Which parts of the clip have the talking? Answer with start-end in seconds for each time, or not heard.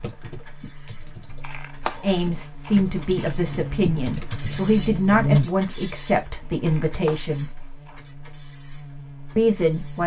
2.0-7.5, 9.3-10.0.